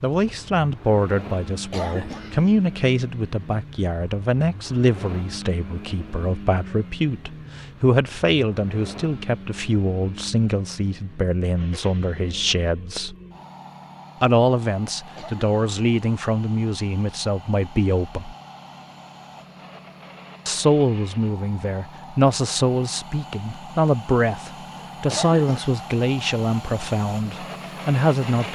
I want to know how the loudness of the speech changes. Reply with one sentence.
The volume of the speech stays about the same.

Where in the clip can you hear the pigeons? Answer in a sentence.
The pigeons can't be heard in this clip.